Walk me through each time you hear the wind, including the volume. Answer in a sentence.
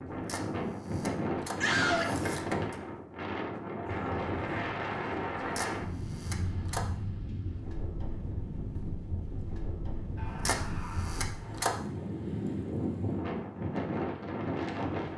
You can hear the wind from 0.0 to 15.1 s, getting quieter then louder.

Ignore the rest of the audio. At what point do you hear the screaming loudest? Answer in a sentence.
The volume of the screaming peaks at 2 seconds.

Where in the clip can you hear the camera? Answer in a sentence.
You can hear the camera from 0.1 to 2.8 s, from 5.4 to 6.8 s and from 10.2 to 11.8 s.